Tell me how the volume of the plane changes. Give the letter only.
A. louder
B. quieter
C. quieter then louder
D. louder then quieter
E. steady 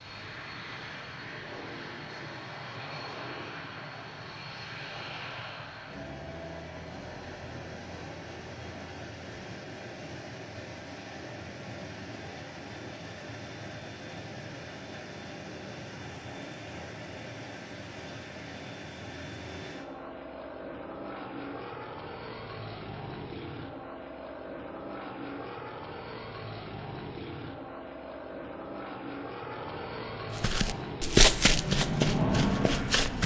A.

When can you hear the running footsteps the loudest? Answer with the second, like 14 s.
31 s.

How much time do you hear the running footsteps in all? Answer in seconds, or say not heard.
3 s.